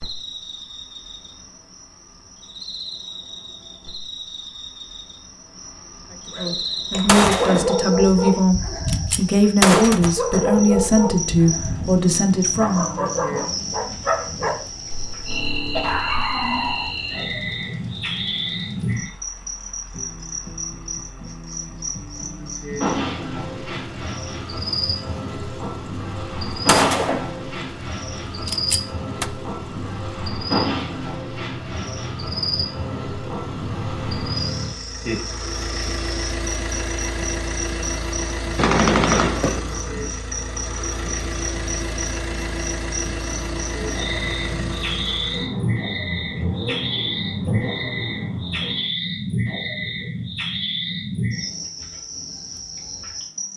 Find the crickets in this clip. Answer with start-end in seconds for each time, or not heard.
0.0-53.5.